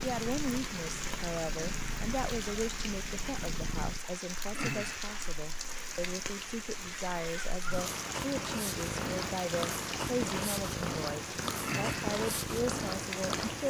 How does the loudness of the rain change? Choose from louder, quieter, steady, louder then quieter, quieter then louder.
steady.